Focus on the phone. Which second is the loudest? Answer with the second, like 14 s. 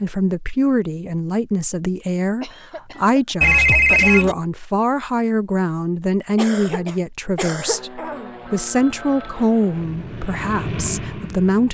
4 s.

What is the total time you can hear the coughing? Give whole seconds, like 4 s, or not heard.
3 s.